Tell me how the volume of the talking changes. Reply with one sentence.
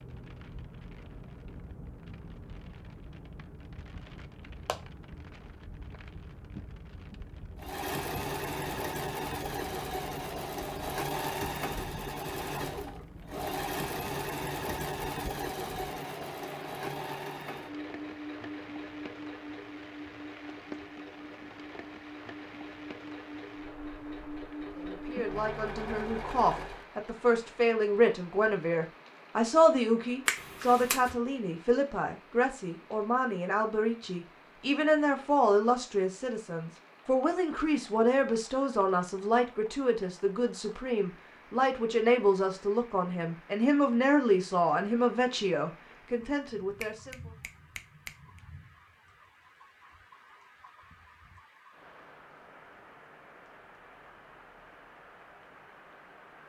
The loudness of the talking stays about the same.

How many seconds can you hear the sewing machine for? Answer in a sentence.
You can hear the sewing machine for 19 seconds altogether.